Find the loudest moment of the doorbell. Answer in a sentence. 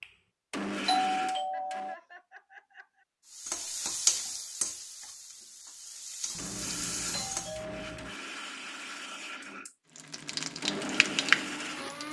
The volume of the doorbell peaks at 1 second.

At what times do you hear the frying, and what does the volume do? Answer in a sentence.
You can hear the frying from 3.3 to 7.5 s, getting quieter then louder; and briefly from 9.9 to 12.0 s.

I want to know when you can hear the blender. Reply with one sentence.
The blender can be heard from 0.0 to 1.9 s and from 6.3 to 12.0 s.